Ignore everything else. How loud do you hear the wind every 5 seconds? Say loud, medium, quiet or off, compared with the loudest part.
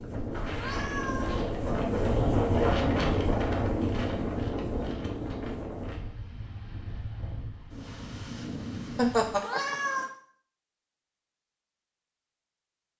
loud, medium, off.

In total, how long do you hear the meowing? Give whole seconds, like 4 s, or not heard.
2 s.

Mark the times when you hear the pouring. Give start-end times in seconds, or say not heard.
not heard.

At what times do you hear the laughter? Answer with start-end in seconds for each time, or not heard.
8.9-9.8.